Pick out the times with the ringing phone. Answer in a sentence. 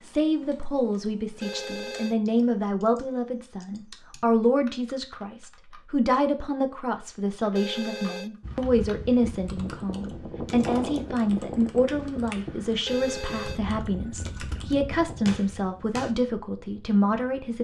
You can hear the ringing phone from 1.4 to 2.1 s, from 7.5 to 8.3 s and from 12.8 to 14.8 s.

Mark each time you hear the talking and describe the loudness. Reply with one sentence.
You can hear the talking from 0.0 to 17.5 s, at a steady volume.